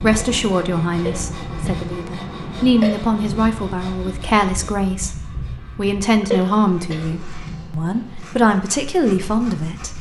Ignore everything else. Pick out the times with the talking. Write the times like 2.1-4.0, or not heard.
0.0-9.9.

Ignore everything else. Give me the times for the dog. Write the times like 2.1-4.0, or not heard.
not heard.